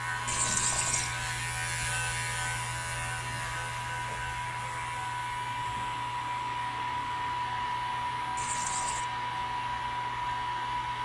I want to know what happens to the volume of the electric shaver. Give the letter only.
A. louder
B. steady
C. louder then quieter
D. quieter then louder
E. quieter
E.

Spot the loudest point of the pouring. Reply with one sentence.
The volume of the pouring peaks at 1 second.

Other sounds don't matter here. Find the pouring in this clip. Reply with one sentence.
The pouring can be heard from 0.2 to 1.1 s and from 8.3 to 9.1 s.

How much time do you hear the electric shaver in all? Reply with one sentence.
The electric shaver can be heard for 11 seconds in total.